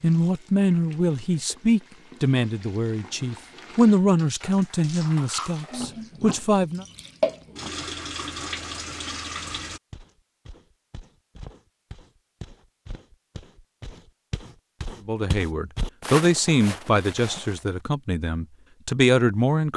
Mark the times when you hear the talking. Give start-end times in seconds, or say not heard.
0.0-6.8, 15.1-19.7.